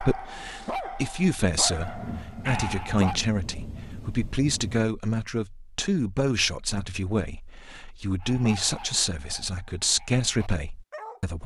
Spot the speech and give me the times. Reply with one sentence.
The speech can be heard from 0.0 to 11.4 s.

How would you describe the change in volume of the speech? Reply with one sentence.
The volume of the speech stays about the same.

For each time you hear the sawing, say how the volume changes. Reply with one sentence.
The sawing can't be heard in this clip.